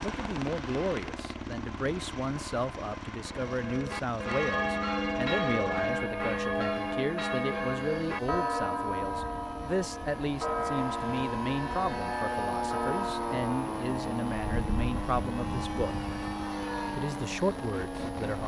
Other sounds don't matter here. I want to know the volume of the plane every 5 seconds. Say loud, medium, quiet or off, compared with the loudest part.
medium, medium, loud, loud.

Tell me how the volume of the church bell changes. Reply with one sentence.
The loudness of the church bell goes down.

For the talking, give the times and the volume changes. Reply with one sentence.
You can hear the talking from 0.0 to 15.9 s, at a steady volume; and briefly from 16.9 to 18.4 s.